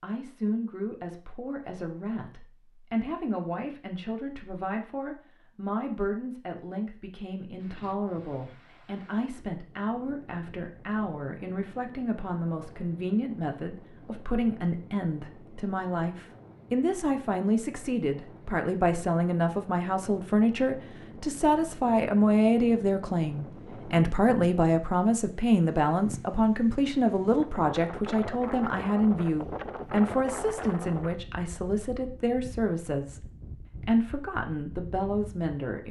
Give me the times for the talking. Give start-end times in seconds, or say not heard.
0.0-35.8.